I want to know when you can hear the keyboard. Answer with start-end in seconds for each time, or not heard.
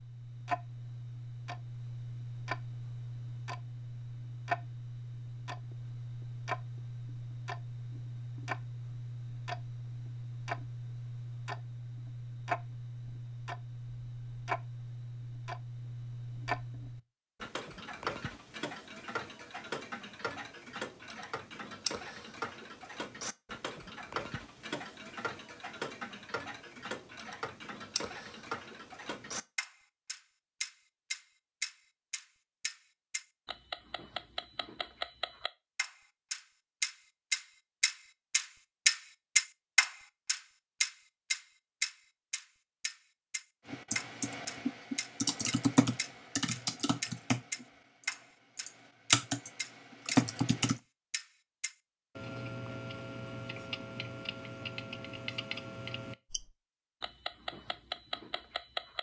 43.7-50.8.